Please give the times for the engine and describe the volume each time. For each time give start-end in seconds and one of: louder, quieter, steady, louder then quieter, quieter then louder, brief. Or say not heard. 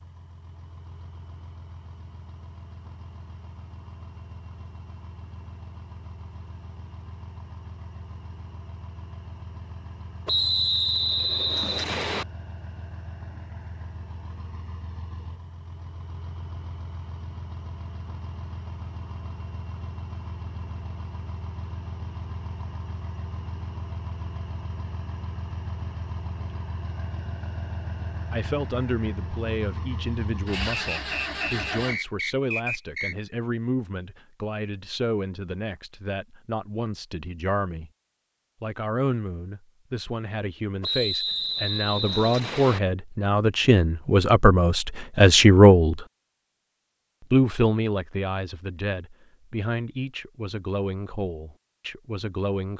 0.0-32.0 louder.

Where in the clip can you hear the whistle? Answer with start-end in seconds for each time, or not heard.
10.2-12.2, 30.9-33.1, 40.8-42.8.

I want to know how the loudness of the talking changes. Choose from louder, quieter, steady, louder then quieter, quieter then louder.
louder then quieter.